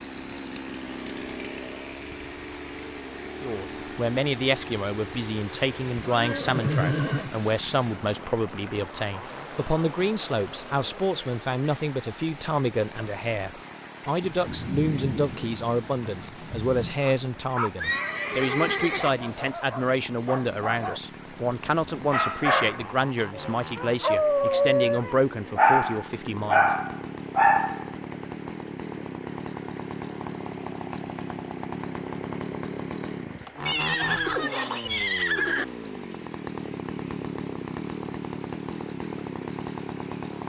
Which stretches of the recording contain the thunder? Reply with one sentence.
The thunder can be heard from 14.2 to 17.0 s.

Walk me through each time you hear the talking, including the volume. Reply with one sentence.
You can hear the talking from 3.4 to 26.6 s, at a steady volume.